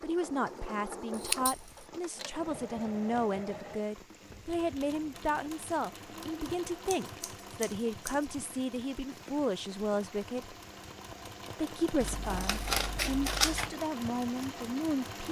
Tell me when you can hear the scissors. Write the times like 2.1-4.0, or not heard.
1.1-1.9, 6.8-8.2, 12.0-13.8.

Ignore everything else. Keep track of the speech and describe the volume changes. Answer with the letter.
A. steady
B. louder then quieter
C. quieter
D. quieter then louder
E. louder
A.